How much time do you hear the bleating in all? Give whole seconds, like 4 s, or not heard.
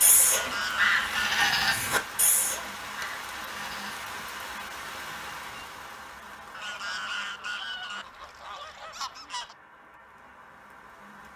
4 s.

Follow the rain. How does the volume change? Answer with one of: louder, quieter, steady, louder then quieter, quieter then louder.
quieter.